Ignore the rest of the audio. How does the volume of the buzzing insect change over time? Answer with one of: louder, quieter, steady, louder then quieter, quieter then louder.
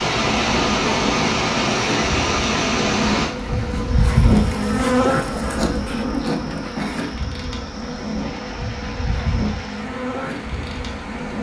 louder then quieter.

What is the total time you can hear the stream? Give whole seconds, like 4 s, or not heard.
11 s.